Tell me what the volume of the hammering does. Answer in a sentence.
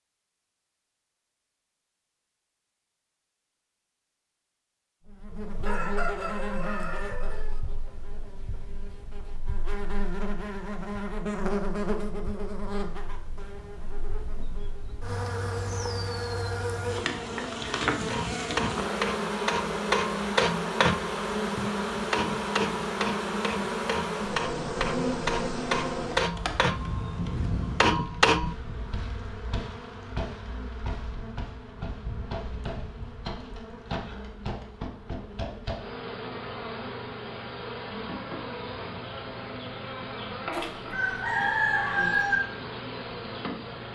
The loudness of the hammering goes down, then up.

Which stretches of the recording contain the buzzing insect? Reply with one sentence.
You can hear the buzzing insect from 5.0 to 43.9 s.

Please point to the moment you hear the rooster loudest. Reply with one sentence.
The volume of the rooster peaks at 42 seconds.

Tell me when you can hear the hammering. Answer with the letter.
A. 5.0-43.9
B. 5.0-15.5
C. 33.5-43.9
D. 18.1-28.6
D.